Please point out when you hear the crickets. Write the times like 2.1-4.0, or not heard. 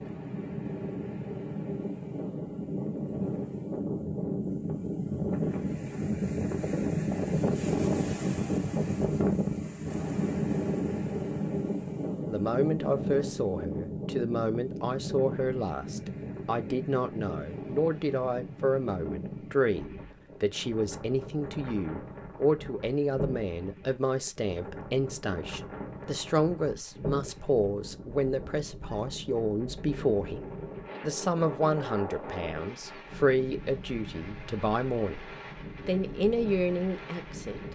not heard.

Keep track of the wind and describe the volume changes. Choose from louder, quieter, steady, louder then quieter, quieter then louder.
quieter.